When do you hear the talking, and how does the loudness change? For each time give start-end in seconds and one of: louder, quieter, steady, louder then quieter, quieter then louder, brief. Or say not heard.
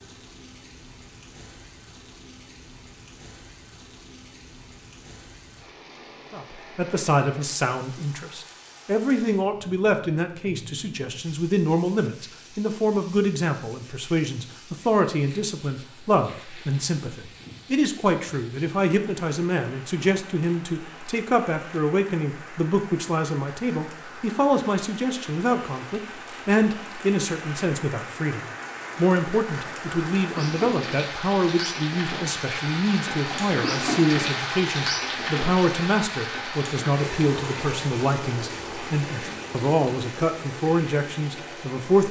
6.3-42.0 steady.